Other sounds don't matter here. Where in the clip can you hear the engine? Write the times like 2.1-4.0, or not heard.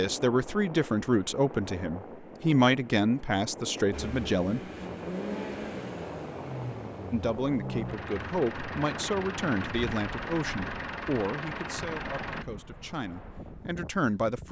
3.9-12.4.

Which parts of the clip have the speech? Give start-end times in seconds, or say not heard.
0.0-4.6, 7.1-14.4.